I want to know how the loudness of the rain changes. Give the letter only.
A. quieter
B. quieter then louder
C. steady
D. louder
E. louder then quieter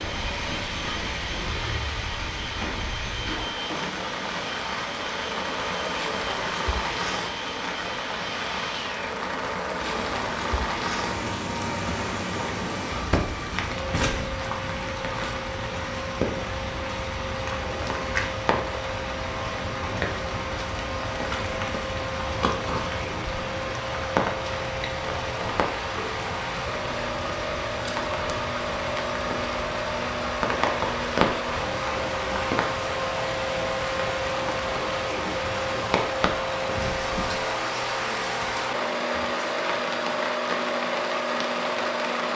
C.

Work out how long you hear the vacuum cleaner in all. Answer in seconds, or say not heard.
42 s.